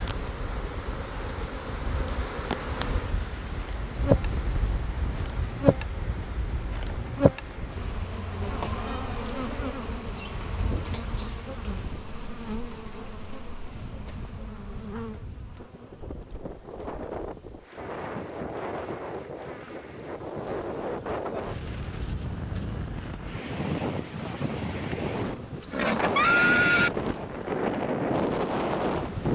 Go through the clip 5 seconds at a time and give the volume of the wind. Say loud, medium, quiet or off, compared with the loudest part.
medium, quiet, quiet, medium, medium, loud.